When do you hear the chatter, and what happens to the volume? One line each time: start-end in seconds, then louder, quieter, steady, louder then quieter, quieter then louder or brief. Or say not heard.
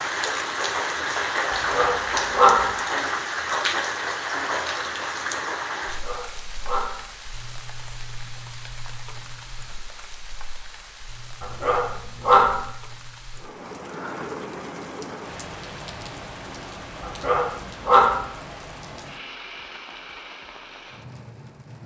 not heard.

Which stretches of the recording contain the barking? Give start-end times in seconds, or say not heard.
1.5-2.6, 5.8-7.0, 11.4-12.6, 17.0-18.1.